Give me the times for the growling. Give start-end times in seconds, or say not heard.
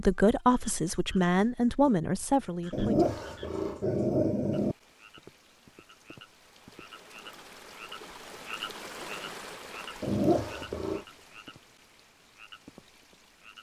2.7-4.8, 10.0-11.1.